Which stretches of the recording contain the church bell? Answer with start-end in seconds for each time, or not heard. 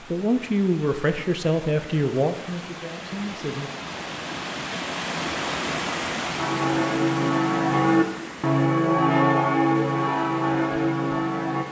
6.3-11.6.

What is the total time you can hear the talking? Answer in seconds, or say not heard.
4 s.